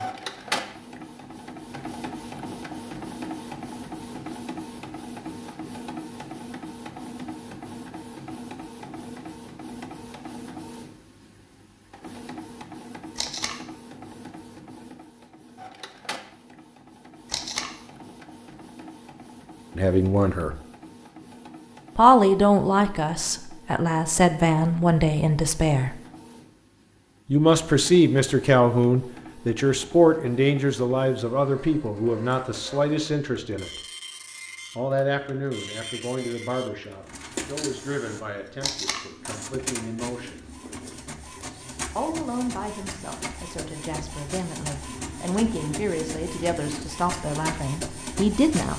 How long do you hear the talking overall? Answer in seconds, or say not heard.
24 s.